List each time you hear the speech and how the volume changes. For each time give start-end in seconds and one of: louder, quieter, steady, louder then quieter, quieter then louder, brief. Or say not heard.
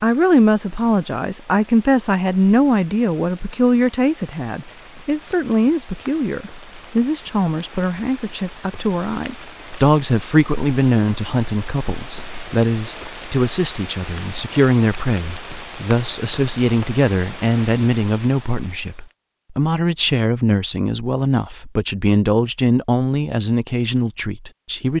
0.0-24.9 steady.